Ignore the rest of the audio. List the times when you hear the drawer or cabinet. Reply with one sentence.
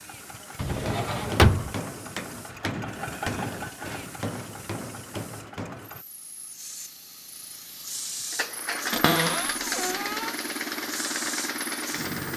The drawer or cabinet can be heard from 0.6 to 1.8 s and from 8.9 to 10.3 s.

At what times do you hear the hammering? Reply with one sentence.
The hammering can be heard from 0.8 to 5.9 s.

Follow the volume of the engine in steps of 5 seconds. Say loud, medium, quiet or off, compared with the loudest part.
medium, loud, loud.